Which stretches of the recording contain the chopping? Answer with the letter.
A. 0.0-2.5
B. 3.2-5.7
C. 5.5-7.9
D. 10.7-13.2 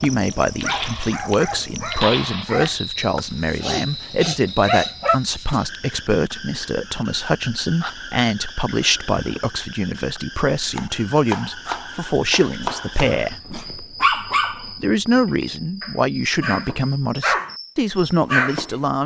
D.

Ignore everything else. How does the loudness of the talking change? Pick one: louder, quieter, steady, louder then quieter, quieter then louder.
steady.